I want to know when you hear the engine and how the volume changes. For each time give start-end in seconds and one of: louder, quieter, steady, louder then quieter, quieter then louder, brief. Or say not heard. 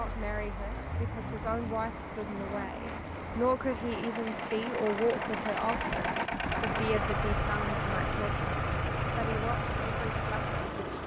0.0-11.0 louder.